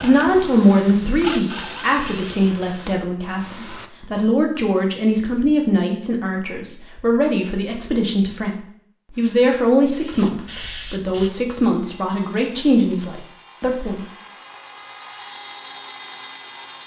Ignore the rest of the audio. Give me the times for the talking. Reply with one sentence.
The talking can be heard from 0.0 to 14.1 s.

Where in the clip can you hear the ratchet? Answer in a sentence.
You can't hear the ratchet here.